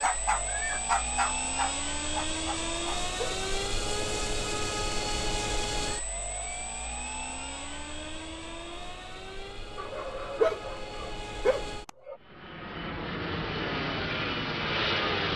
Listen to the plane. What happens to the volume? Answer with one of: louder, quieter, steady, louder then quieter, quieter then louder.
quieter then louder.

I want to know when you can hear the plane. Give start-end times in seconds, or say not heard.
0.0-15.3.